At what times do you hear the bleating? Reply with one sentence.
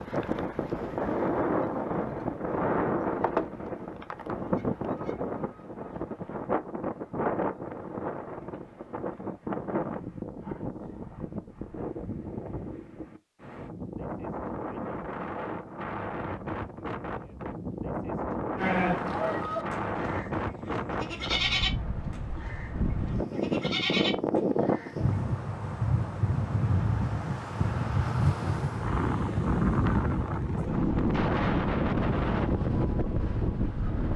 The bleating can be heard from 18.6 to 24.9 s.